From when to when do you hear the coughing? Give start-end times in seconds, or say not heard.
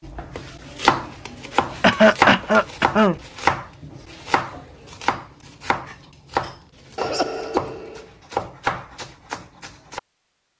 1.8-3.1, 7.0-8.1.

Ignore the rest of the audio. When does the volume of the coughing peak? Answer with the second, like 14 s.
2 s.